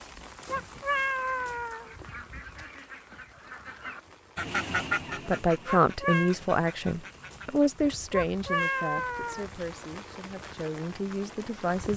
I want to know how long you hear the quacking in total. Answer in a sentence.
You can hear the quacking for 7 seconds altogether.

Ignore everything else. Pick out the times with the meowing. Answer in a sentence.
The meowing can be heard from 0.5 to 1.9 s, from 5.7 to 6.3 s and from 8.1 to 9.4 s.